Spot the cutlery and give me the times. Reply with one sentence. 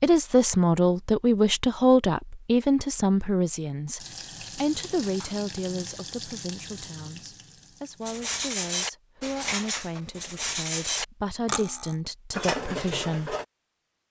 The cutlery can be heard from 8.1 to 13.4 s.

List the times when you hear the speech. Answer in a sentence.
The speech can be heard from 0.0 to 13.3 s.